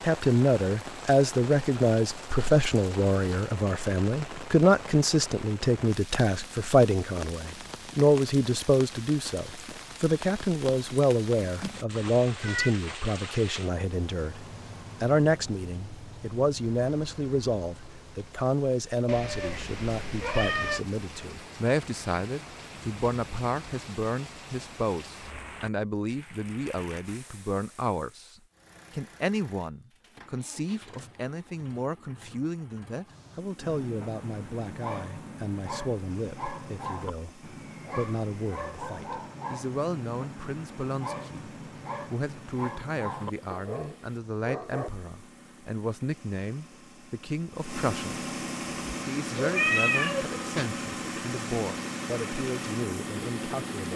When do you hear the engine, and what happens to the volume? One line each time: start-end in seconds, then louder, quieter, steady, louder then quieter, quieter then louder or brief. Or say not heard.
28.5-53.9 louder.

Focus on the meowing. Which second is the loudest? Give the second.
50 s.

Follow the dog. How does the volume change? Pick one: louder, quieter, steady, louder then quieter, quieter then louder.
steady.